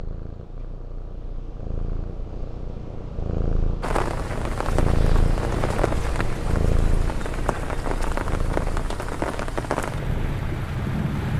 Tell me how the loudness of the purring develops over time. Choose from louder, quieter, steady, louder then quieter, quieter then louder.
louder then quieter.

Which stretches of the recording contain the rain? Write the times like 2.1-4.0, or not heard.
3.8-11.3.